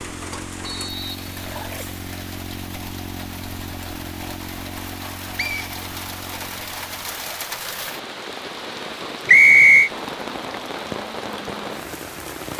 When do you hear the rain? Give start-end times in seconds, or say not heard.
0.0-12.5.